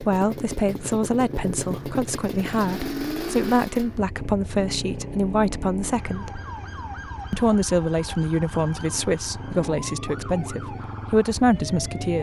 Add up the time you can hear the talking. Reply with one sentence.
You can hear the talking for 11 seconds altogether.